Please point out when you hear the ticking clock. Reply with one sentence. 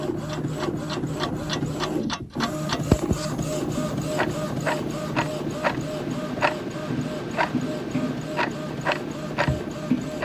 The ticking clock can be heard from 0.0 to 10.2 s.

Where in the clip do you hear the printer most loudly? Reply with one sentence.
The loudest moment of the printer is at 3 seconds.